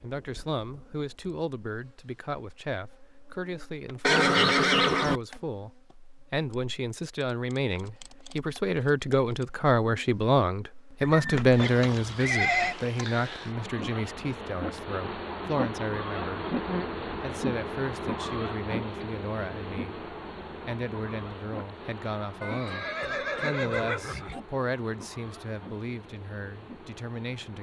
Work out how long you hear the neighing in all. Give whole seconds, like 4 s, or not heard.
5 s.